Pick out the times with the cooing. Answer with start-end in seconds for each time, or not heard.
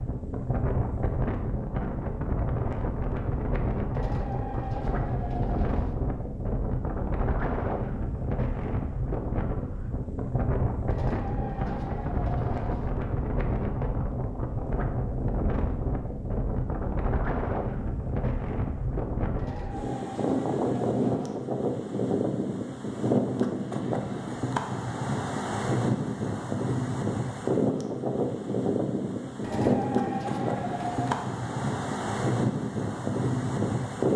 3.9-6.0, 10.9-12.9, 19.4-21.4, 29.4-31.2.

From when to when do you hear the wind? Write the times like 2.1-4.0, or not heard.
0.0-34.1.